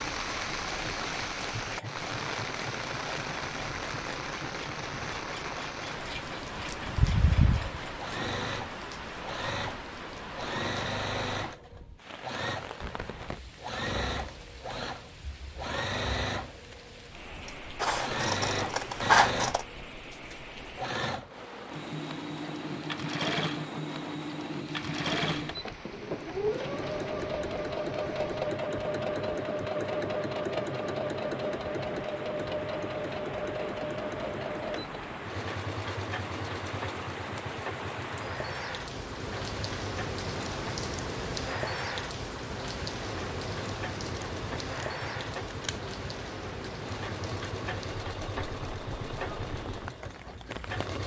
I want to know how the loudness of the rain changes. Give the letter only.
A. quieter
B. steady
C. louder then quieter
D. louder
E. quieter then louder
E.